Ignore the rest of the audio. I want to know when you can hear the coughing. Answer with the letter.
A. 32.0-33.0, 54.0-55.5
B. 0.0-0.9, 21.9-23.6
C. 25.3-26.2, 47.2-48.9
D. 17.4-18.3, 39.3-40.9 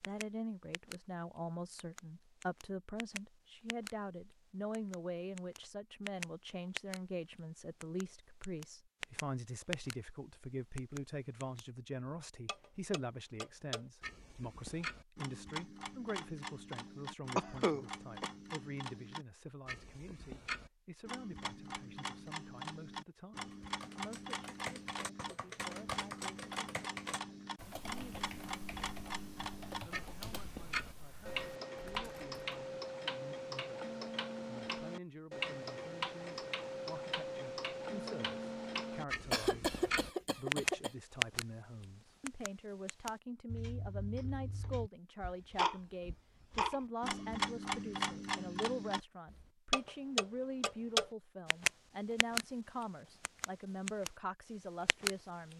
D.